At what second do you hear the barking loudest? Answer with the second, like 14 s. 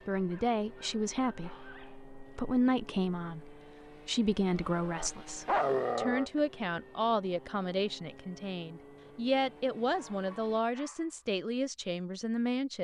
6 s.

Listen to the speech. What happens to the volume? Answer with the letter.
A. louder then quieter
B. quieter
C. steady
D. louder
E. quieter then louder
C.